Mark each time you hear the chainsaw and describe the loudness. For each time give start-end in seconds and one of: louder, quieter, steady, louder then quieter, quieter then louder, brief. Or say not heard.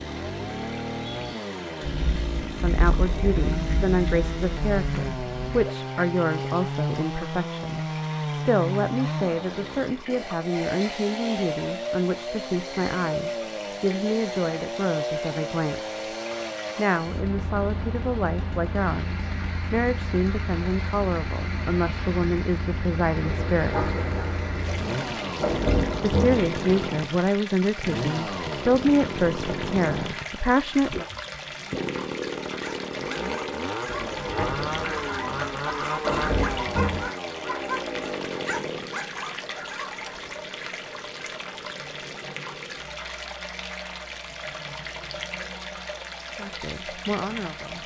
0.0-47.8 quieter.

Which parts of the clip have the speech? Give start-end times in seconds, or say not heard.
2.4-15.9, 16.8-23.9, 26.1-31.1, 46.3-47.8.